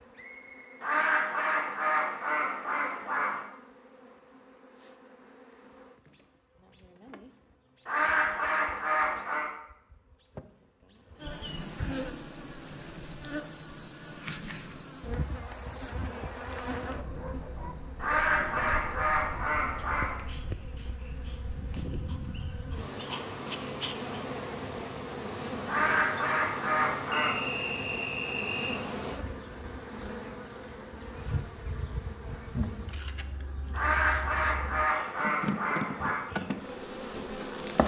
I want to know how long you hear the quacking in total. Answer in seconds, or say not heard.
11 s.